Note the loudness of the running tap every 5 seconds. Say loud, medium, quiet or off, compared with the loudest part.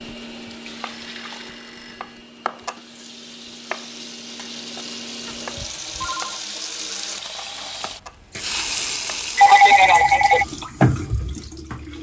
quiet, medium, loud.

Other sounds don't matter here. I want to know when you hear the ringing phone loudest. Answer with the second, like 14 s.
10 s.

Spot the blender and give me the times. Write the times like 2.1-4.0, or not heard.
0.0-5.8.